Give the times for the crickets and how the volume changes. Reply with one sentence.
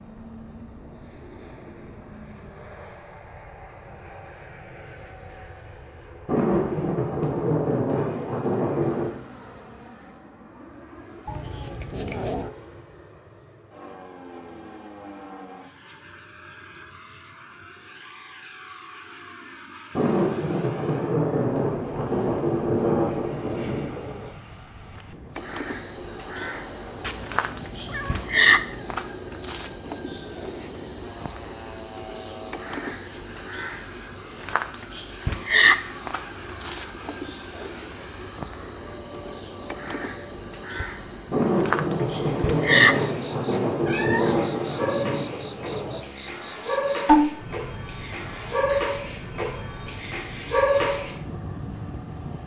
The crickets can be heard from 25.4 to 52.4 s, getting quieter then louder.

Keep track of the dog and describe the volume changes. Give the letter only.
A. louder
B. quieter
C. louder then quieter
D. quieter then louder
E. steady
A.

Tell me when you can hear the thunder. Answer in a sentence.
The thunder can be heard from 6.2 to 9.1 s, from 19.9 to 24.3 s and from 41.3 to 46.0 s.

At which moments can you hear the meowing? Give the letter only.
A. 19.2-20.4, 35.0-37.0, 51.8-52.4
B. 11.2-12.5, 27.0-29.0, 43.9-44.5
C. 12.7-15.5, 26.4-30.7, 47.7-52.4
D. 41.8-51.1
B.